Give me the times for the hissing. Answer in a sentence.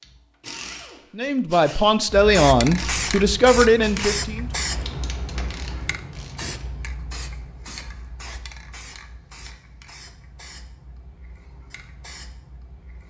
You can hear the hissing from 2.1 to 13.0 s.